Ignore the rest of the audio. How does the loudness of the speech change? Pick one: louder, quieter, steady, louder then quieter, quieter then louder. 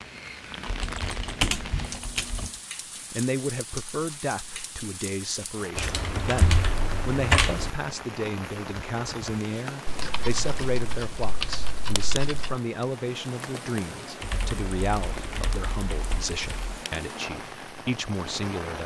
steady.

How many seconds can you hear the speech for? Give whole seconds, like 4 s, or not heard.
16 s.